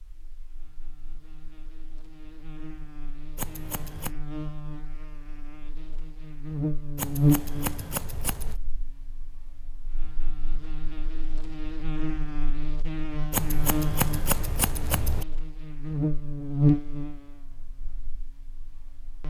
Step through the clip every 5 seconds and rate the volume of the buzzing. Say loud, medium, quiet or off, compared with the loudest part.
quiet, loud, medium, loud.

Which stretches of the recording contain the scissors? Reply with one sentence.
The scissors can be heard from 3.4 to 4.2 s, from 7.0 to 8.6 s and from 13.3 to 15.2 s.